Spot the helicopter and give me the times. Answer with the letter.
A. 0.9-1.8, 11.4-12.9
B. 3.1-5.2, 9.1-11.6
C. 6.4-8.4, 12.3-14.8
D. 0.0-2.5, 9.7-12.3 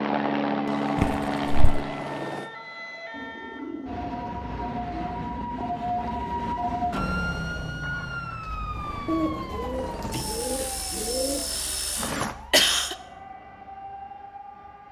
D.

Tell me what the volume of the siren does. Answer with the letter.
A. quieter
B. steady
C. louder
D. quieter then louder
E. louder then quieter
E.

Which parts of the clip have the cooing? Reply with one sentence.
The cooing can be heard from 3.1 to 5.2 s and from 9.1 to 11.6 s.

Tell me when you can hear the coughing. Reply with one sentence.
You can hear the coughing from 0.9 to 1.8 s and from 11.4 to 12.9 s.